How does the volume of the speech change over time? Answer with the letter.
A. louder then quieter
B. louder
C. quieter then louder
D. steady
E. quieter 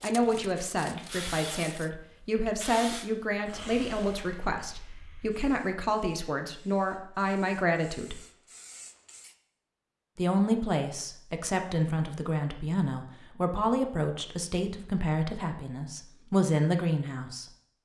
D.